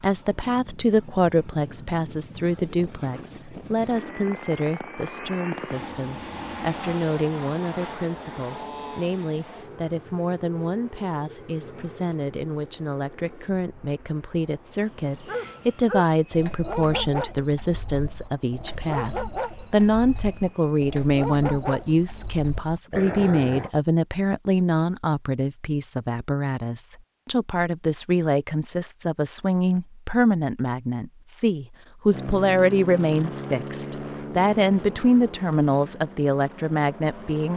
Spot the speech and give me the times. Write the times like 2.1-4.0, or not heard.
0.0-37.5.